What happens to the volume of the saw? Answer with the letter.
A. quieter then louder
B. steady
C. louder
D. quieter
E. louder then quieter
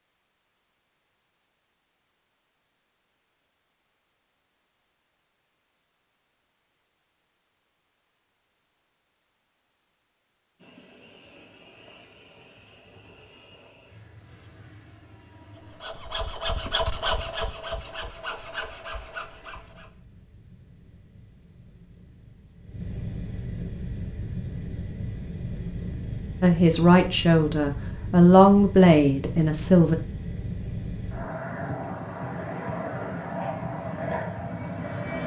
D.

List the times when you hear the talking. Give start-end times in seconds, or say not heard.
26.4-29.9.